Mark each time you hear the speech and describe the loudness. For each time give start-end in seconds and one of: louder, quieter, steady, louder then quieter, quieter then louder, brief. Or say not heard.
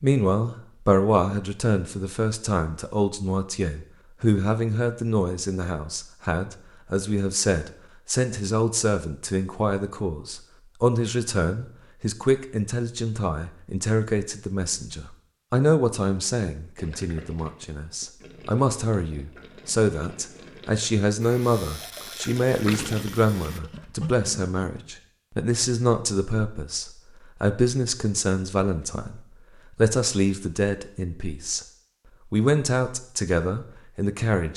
0.0-31.6 steady
32.3-34.5 brief.